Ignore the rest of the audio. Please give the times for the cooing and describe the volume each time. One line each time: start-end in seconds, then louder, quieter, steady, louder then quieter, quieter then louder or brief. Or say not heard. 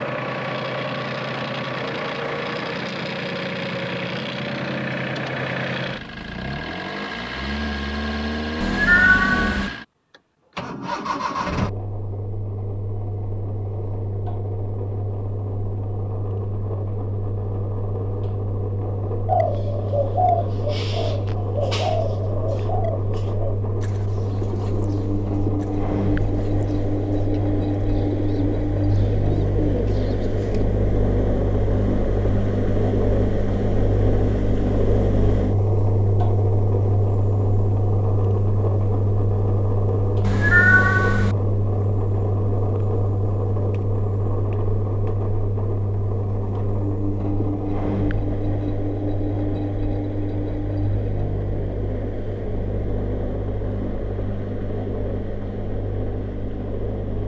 19.2-30.6 quieter then louder.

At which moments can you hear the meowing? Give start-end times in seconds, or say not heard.
8.6-9.7, 40.2-41.4.